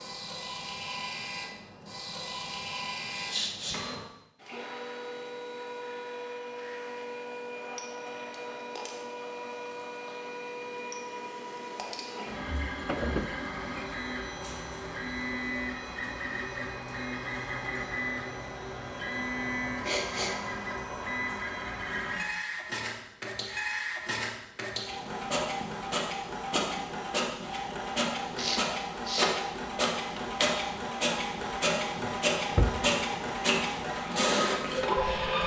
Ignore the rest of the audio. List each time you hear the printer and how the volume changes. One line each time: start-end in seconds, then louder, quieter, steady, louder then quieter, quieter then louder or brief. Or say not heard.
0.0-35.4 louder.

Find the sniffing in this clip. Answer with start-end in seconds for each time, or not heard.
3.1-3.9, 19.8-20.4, 28.4-29.4.